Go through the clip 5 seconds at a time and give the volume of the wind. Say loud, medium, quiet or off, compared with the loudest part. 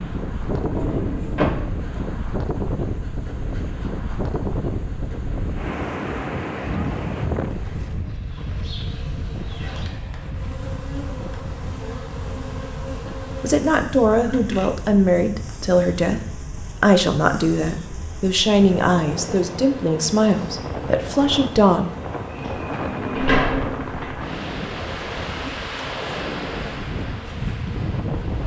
loud, loud, medium, medium, loud, loud.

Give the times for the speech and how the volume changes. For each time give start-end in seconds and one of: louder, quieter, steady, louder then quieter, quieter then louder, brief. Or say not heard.
13.4-21.9 steady.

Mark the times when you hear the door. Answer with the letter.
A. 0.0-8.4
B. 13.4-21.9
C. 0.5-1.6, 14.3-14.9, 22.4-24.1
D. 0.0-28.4
C.